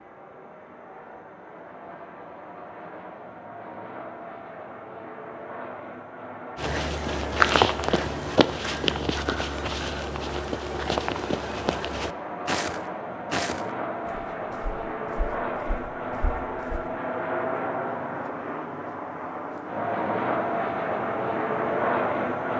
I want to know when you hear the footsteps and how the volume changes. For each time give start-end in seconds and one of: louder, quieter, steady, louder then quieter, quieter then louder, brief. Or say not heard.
6.5-16.9 quieter.